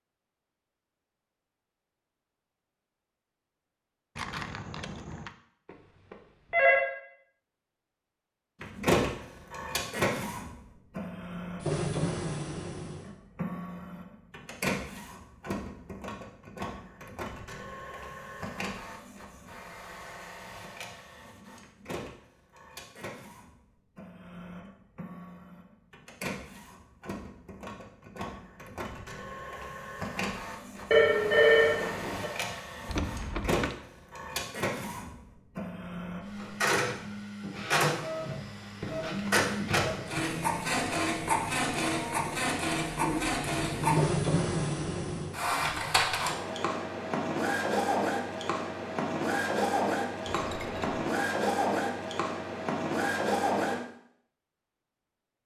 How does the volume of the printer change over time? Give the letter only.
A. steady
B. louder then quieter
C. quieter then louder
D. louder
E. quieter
C.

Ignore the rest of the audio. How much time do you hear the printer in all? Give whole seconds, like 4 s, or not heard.
45 s.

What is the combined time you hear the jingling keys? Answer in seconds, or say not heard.
3 s.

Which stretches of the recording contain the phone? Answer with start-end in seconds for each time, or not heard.
5.7-6.8, 30.9-32.3.